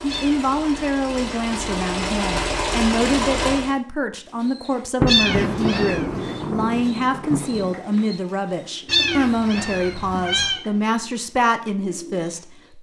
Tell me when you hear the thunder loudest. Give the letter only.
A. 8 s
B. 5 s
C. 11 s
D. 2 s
B.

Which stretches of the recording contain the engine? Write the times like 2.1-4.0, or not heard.
0.0-3.8.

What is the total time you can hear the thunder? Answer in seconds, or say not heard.
3 s.